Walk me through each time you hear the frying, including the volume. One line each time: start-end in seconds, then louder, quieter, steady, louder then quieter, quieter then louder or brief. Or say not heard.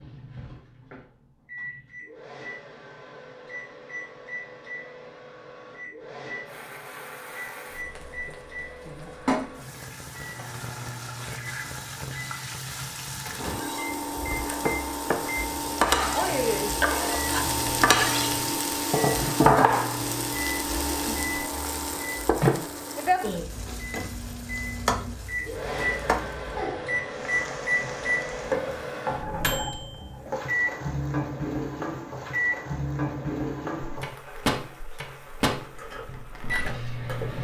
6.5-37.3 louder then quieter.